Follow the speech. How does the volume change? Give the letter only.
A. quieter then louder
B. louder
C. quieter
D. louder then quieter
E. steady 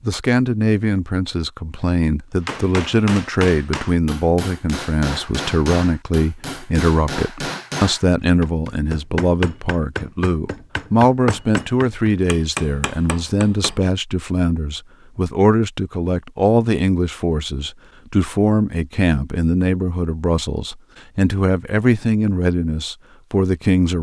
E.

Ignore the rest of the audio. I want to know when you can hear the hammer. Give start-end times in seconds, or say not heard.
2.5-13.8.